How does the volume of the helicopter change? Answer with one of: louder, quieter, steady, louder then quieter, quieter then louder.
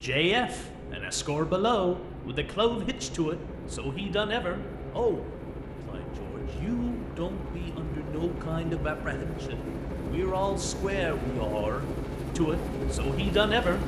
louder.